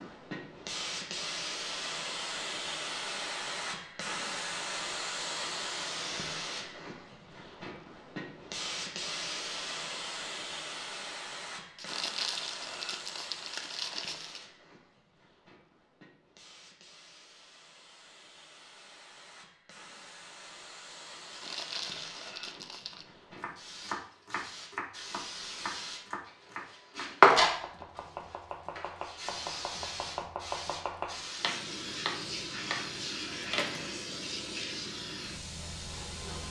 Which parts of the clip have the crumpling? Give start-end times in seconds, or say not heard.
11.8-14.4, 21.3-23.1.